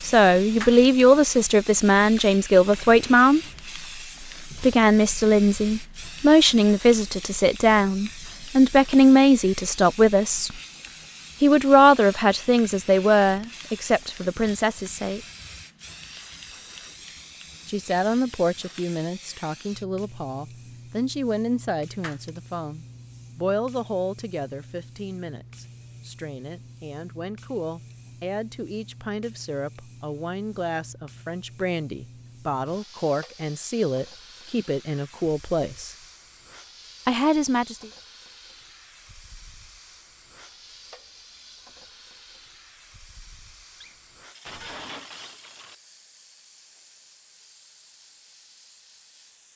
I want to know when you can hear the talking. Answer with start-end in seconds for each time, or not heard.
0.0-3.4, 4.6-10.6, 11.4-15.2, 17.6-36.0, 37.0-37.9.